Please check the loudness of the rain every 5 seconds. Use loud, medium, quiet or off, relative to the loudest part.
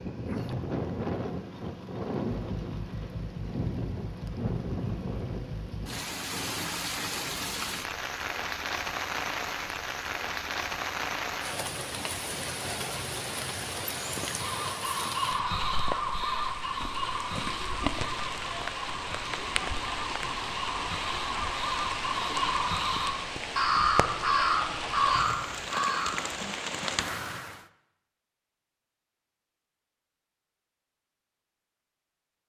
loud, loud, loud, loud, loud, loud, off.